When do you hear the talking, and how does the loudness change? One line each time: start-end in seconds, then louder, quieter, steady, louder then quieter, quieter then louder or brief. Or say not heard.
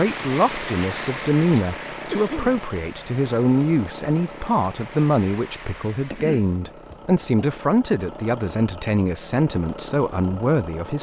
0.0-10.9 steady.